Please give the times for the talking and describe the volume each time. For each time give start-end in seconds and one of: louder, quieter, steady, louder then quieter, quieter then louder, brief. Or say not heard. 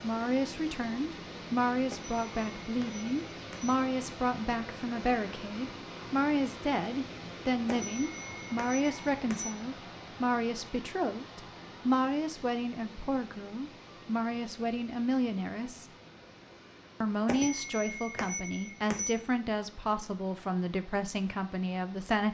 0.0-15.8 steady
17.0-22.2 steady.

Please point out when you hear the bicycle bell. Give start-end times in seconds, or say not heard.
1.9-3.8, 7.7-9.6, 17.2-19.1.